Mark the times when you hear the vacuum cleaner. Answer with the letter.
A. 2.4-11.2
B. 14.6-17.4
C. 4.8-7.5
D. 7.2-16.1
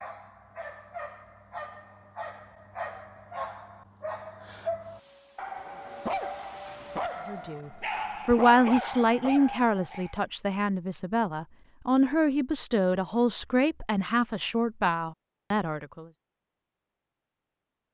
C.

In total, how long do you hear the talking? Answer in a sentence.
You can hear the talking for 9 seconds altogether.